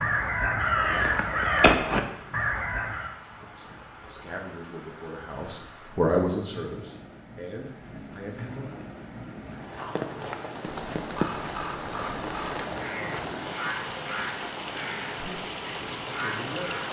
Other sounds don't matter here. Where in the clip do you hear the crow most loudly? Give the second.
2 s.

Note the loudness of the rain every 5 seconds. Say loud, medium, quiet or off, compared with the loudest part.
quiet, medium, loud, loud.